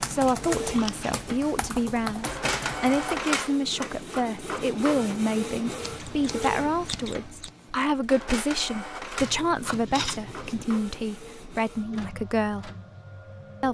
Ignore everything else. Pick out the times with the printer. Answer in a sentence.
You can hear the printer from 0.0 to 13.6 s.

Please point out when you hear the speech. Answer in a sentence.
You can hear the speech from 0.0 to 12.7 s.